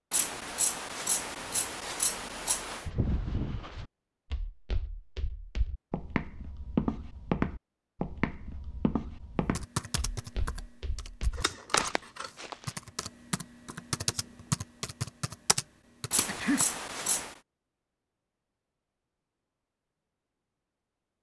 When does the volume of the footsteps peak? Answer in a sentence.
The volume of the footsteps peaks at 7 seconds.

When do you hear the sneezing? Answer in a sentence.
You can hear the sneezing from 16.2 to 16.8 s.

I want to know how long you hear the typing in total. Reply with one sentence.
You can hear the typing for 7 seconds altogether.